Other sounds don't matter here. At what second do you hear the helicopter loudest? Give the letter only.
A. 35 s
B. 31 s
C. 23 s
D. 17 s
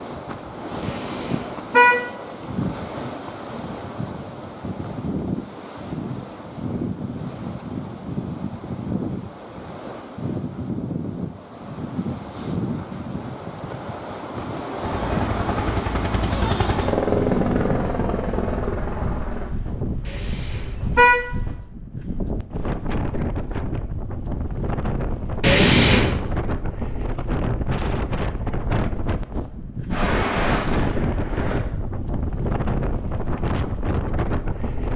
D.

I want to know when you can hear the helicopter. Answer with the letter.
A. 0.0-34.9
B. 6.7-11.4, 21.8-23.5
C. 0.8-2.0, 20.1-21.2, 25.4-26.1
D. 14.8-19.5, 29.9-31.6
D.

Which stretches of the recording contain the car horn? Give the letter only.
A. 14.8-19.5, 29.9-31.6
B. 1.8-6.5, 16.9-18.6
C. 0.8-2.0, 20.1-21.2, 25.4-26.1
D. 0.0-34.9
C.